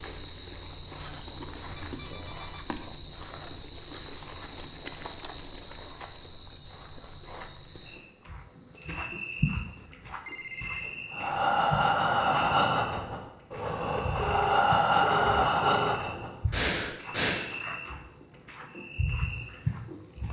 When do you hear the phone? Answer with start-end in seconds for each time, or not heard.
1.8-2.6, 9.8-10.9, 14.0-15.9.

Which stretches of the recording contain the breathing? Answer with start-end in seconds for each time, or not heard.
11.1-17.5.